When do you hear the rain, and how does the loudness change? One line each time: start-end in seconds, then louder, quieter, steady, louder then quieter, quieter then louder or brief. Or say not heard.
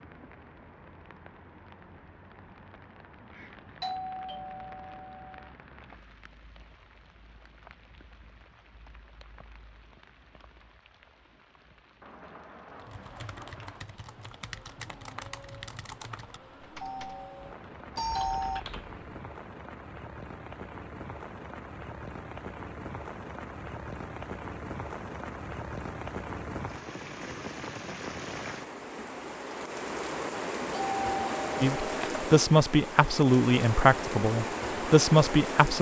0.0-35.7 louder.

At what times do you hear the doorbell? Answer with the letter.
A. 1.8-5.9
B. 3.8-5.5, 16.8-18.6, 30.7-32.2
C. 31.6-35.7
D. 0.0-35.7
B.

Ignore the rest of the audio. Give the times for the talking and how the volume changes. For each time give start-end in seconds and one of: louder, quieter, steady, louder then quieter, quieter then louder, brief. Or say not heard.
31.6-35.7 quieter then louder.